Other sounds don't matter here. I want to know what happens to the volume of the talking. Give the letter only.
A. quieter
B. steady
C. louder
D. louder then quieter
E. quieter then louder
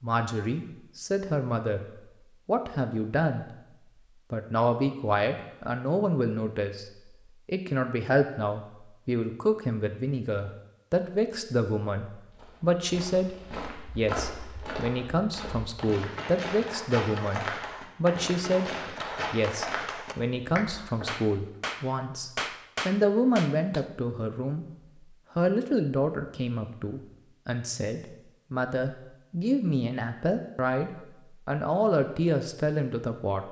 B.